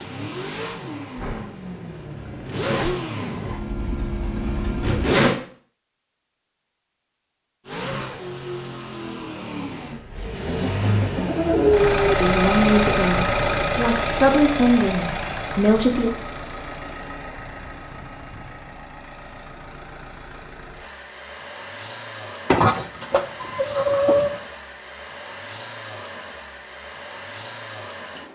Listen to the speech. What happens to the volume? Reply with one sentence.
The loudness of the speech goes down, then up.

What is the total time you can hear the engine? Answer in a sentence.
You can hear the engine for 26 seconds altogether.